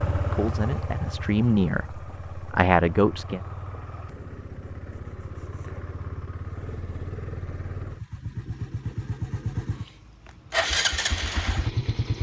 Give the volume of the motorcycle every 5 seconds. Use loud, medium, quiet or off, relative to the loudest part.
medium, medium, loud.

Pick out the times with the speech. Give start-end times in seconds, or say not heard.
0.1-3.4.